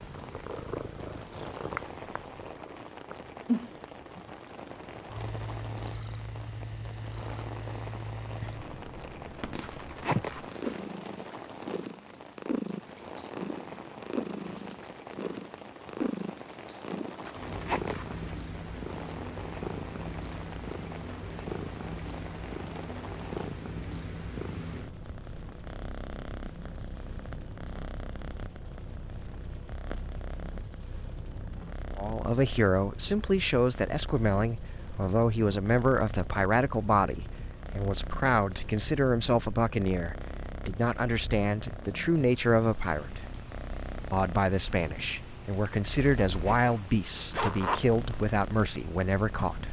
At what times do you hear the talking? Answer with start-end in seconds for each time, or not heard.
31.9-43.2, 44.1-49.6.